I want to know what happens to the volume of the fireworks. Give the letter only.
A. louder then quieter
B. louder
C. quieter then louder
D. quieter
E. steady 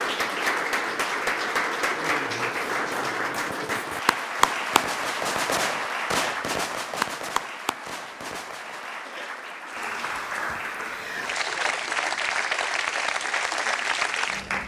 A.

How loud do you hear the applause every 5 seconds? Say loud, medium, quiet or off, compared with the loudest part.
loud, medium, loud.